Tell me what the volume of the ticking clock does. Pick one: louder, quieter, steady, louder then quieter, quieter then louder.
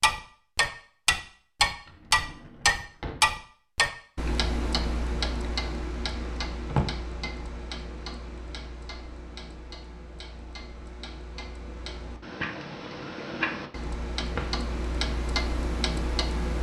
quieter then louder.